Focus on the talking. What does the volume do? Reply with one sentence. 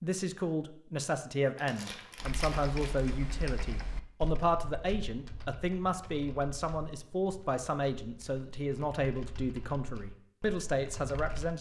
The loudness of the talking stays about the same.